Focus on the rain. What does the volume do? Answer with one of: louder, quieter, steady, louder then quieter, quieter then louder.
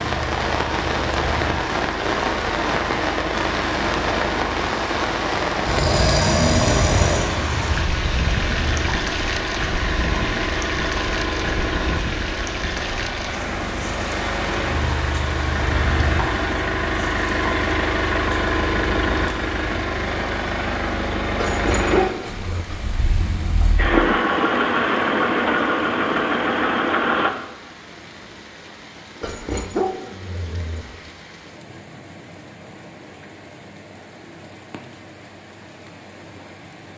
quieter.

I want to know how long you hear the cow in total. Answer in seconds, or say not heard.
not heard.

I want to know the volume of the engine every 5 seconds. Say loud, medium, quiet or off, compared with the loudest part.
medium, medium, medium, loud, loud, loud, off, off.